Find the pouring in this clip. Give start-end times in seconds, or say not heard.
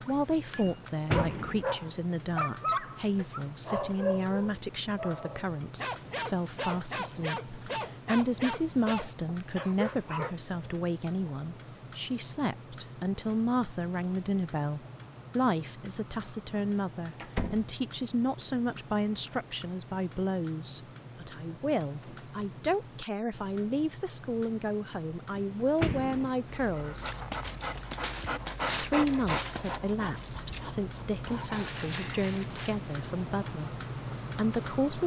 not heard.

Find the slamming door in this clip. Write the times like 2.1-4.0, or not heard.
0.7-1.7, 17.1-17.7, 25.4-26.4.